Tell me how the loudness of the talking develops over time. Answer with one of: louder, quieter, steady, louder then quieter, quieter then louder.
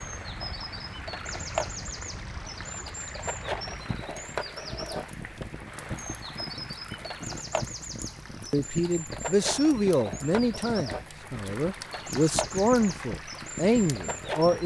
quieter then louder.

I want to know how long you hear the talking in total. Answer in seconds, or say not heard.
6 s.